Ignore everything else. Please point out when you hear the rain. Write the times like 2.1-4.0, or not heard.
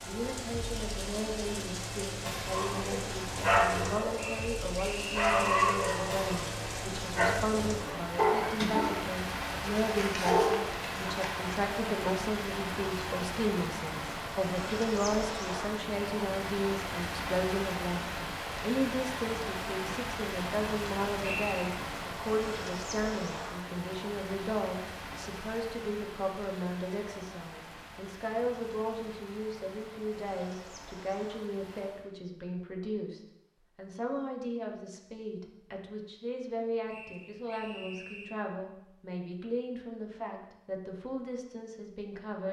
0.0-32.1.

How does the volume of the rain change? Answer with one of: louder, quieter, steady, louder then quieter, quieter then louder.
quieter.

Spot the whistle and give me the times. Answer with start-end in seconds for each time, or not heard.
4.2-5.6, 21.2-21.8, 36.9-38.4.